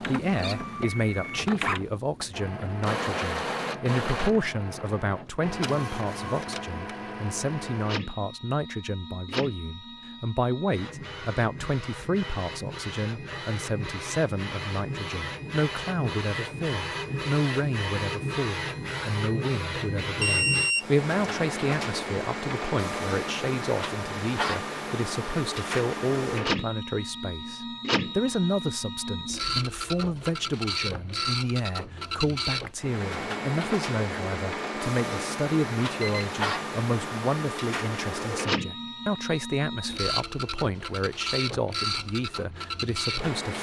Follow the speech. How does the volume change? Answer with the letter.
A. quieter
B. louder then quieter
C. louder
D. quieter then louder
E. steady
E.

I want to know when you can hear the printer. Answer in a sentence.
The printer can be heard from 0.0 to 43.5 s.